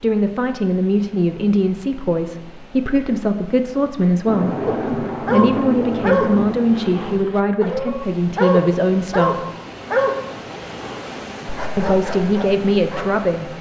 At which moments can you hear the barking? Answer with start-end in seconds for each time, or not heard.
4.7-13.1.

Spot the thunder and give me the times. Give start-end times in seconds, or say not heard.
4.2-7.2.